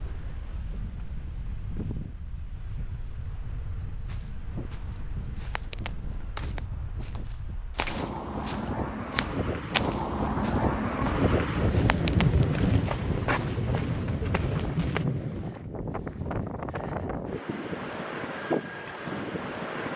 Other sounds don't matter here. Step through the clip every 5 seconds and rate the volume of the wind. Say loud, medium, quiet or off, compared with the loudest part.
quiet, medium, loud, medium.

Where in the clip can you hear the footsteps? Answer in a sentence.
You can hear the footsteps from 4.0 to 15.1 s.